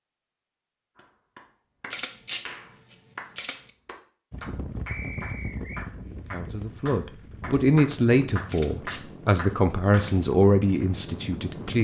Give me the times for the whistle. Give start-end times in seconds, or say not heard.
4.8-5.9.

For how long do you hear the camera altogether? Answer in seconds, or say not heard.
4 s.